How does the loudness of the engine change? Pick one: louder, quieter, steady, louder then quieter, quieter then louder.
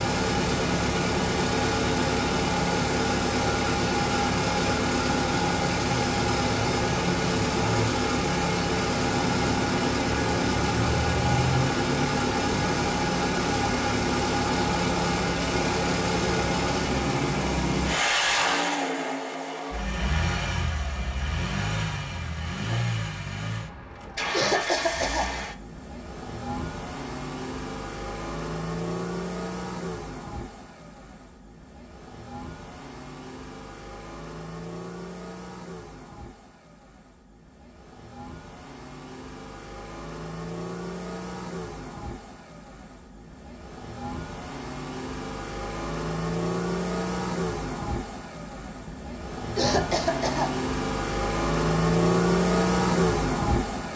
quieter then louder.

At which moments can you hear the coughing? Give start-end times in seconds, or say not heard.
24.3-25.3, 49.5-50.5.